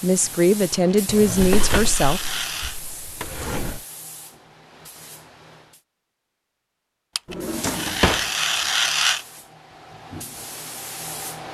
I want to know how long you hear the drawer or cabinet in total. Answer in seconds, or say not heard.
4 s.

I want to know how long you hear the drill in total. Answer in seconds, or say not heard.
not heard.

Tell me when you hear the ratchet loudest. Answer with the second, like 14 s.
9 s.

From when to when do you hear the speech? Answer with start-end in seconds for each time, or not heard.
0.0-2.2.